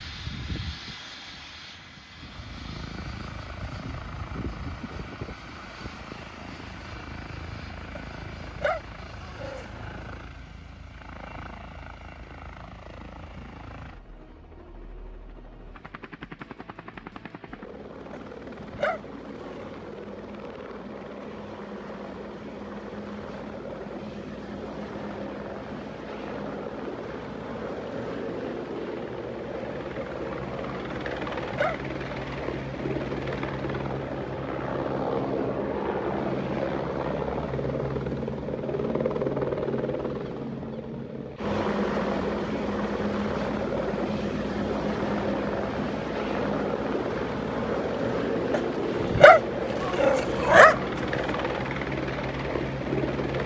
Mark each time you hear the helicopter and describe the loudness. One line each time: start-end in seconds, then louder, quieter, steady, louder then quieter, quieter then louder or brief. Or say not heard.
0.0-53.4 louder.